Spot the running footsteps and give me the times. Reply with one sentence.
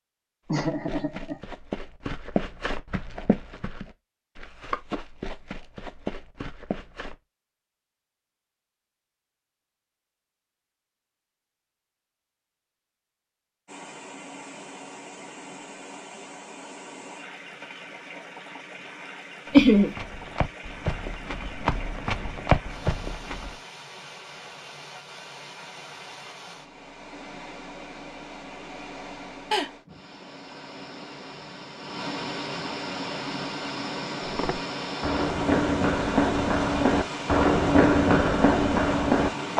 The running footsteps can be heard from 0.5 to 7.2 s, from 19.4 to 23.6 s and from 34.2 to 39.5 s.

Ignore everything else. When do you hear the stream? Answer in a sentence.
You can hear the stream from 13.7 to 39.5 s.